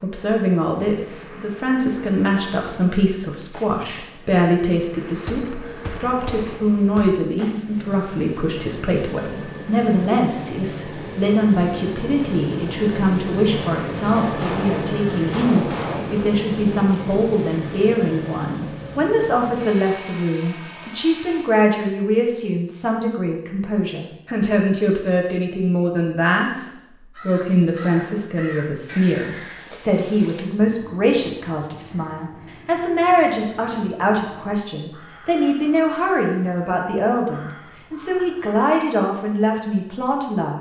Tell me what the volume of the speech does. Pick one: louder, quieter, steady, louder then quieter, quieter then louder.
steady.